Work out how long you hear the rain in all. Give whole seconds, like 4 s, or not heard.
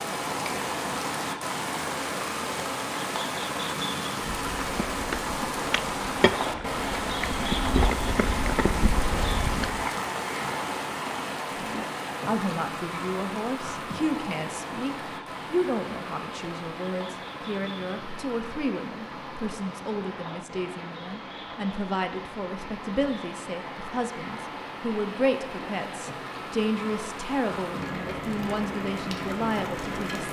30 s.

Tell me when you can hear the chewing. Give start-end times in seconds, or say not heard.
4.2-9.9.